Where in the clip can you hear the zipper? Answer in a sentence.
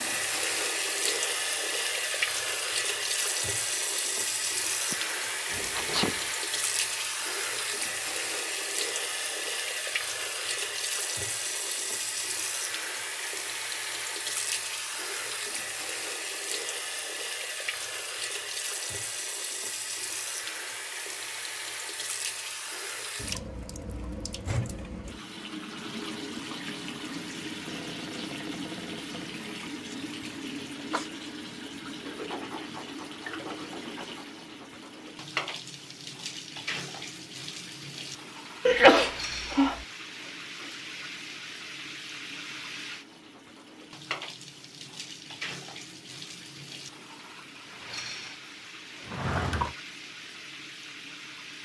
The zipper can't be heard in this clip.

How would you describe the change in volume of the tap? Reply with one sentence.
The loudness of the tap goes down.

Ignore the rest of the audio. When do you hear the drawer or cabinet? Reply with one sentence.
The drawer or cabinet can be heard from 5.5 to 6.3 s, from 27.6 to 29.4 s and from 49.0 to 49.8 s.